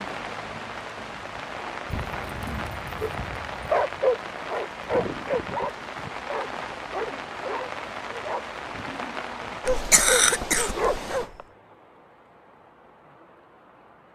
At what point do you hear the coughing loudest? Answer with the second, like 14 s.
10 s.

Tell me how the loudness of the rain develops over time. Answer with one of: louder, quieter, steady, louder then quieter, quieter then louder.
quieter.